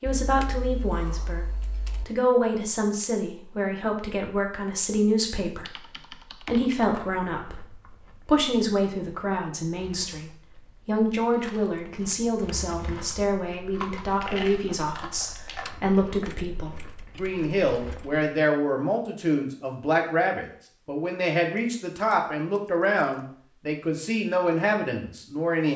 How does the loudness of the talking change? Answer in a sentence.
The loudness of the talking stays about the same.